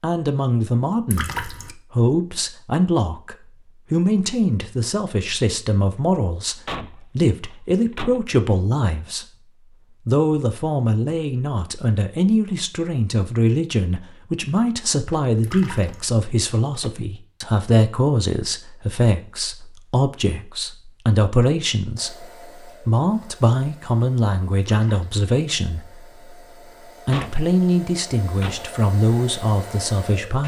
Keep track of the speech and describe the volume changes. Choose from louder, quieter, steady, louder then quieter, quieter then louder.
steady.